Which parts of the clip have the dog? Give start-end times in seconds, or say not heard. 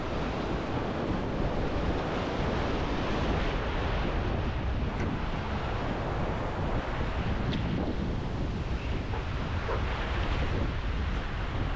9.1-9.8.